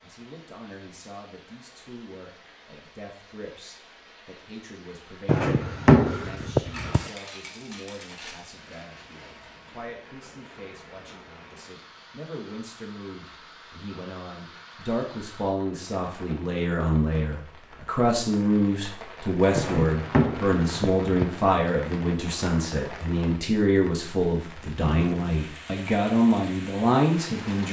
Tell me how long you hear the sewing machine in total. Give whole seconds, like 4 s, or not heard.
not heard.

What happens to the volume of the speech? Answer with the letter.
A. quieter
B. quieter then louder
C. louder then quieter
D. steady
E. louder
E.